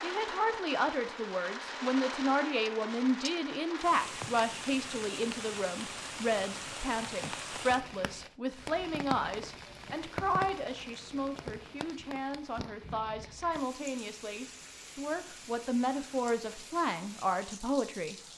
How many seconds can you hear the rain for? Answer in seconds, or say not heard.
18 s.